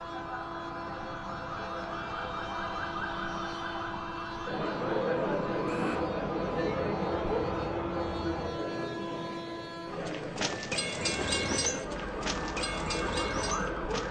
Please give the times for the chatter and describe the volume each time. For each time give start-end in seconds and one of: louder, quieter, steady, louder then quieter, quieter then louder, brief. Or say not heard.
4.5-14.0 quieter.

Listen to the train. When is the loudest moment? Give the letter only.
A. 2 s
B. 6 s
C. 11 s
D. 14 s
C.